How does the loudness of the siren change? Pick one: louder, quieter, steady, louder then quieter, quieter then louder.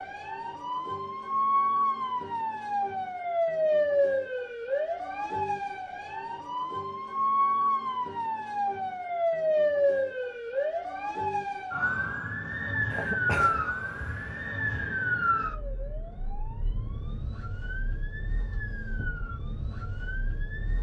quieter.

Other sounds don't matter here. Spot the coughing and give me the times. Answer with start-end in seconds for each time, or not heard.
12.9-15.0.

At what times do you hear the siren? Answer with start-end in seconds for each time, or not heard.
0.0-20.7.